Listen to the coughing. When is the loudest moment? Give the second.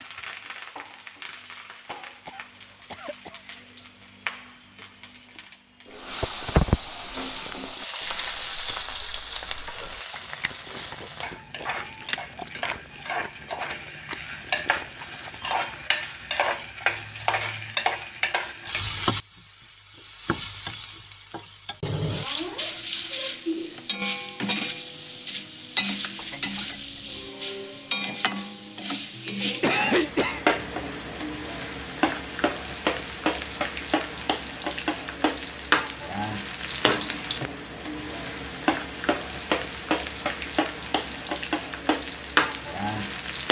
30 s.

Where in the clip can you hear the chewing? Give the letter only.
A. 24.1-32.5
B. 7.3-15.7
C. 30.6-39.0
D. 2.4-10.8
B.